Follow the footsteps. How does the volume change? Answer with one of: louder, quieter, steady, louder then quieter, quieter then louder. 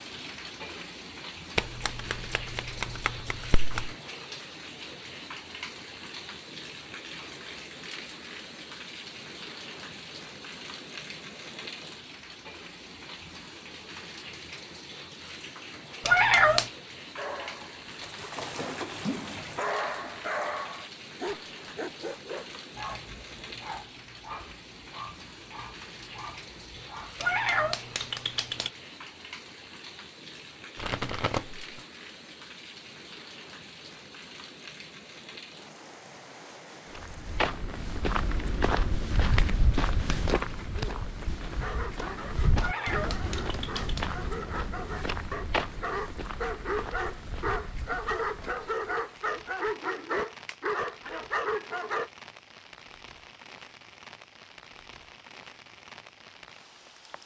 quieter.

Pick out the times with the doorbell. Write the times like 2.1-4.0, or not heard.
not heard.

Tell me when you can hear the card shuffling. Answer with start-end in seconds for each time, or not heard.
1.6-4.0, 30.8-31.8, 39.1-40.9.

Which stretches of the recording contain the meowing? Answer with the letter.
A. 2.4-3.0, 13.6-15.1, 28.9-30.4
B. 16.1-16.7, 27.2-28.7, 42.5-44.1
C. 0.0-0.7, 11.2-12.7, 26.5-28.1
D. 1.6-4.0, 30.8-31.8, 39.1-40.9
B.